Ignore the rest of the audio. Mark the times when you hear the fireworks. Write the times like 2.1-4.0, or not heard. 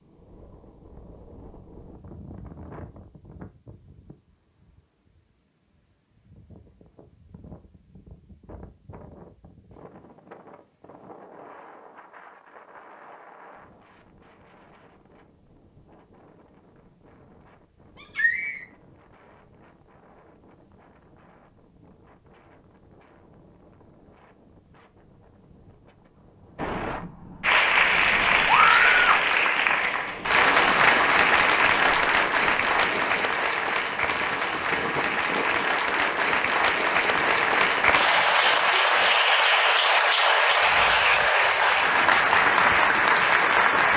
not heard.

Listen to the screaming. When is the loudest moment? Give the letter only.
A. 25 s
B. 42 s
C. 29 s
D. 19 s
C.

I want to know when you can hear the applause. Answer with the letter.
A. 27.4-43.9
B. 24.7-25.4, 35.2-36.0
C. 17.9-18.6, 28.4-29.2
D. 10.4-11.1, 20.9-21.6
A.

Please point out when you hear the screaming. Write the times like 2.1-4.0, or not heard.
17.9-18.6, 28.4-29.2.